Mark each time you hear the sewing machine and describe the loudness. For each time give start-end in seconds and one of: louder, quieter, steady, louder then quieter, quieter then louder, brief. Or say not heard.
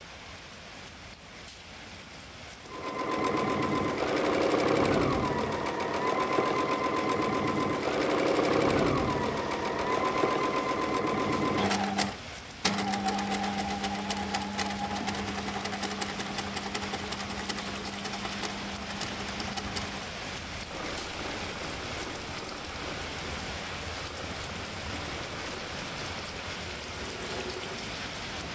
2.6-28.5 quieter.